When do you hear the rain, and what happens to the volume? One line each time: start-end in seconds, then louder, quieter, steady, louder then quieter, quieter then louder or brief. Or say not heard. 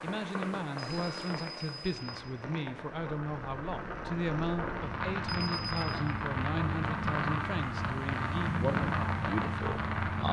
0.0-10.2 louder.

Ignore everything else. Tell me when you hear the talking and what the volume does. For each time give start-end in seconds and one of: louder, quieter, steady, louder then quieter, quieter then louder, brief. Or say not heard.
0.0-10.2 steady.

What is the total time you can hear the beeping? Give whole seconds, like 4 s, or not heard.
2 s.